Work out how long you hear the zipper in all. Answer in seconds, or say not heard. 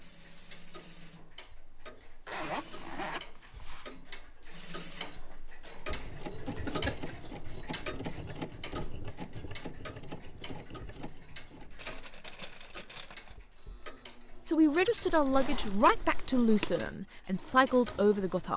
4 s.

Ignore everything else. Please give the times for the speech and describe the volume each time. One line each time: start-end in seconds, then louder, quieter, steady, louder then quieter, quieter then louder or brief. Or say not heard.
14.4-18.5 quieter then louder.